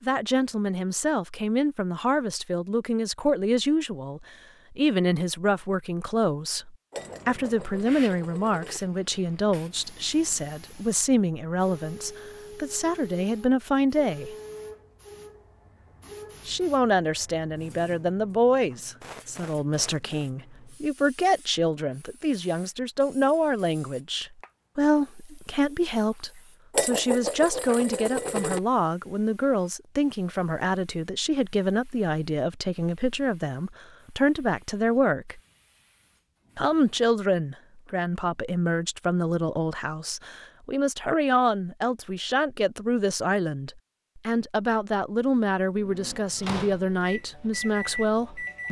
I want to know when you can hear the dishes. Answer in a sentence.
You can hear the dishes from 6.9 to 8.8 s and from 26.7 to 28.6 s.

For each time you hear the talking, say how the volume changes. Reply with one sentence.
The talking can be heard from 0.0 to 14.3 s, at a steady volume; from 16.4 to 35.4 s, at a steady volume; and from 36.5 to 48.6 s, at a steady volume.